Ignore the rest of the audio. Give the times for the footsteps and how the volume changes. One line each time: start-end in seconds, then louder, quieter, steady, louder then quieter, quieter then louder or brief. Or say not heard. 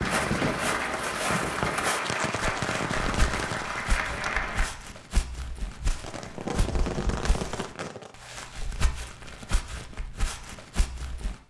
0.1-11.4 quieter.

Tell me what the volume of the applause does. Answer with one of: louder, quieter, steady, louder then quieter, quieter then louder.
steady.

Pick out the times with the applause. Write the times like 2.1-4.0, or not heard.
0.0-4.7.